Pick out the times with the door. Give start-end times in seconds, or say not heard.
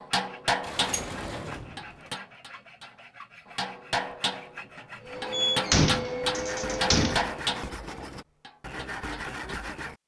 0.6-1.9, 5.3-7.3.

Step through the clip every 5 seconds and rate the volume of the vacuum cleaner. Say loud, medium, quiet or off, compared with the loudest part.
off, loud.